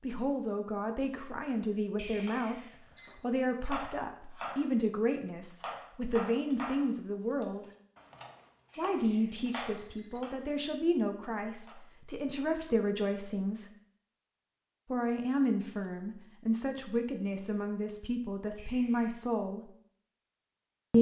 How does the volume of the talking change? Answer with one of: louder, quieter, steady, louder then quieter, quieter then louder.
steady.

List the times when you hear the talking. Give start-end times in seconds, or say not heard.
0.0-7.7, 8.8-13.7, 14.8-19.7.